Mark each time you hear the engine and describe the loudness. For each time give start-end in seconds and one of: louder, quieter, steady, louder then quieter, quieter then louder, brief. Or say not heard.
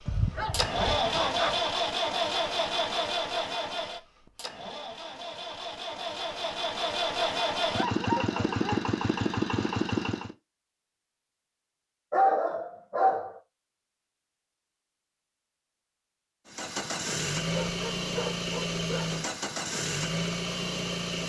0.0-10.3 quieter then louder
16.4-21.2 steady.